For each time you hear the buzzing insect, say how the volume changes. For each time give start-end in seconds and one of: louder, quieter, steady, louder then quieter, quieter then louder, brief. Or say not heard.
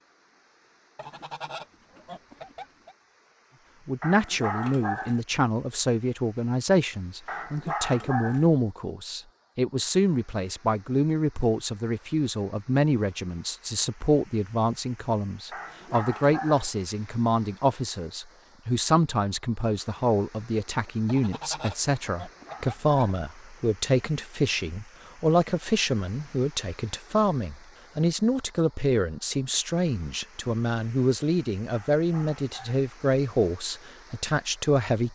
not heard.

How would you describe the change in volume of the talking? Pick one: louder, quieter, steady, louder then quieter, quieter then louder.
steady.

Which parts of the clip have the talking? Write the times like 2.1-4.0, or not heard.
3.9-35.0.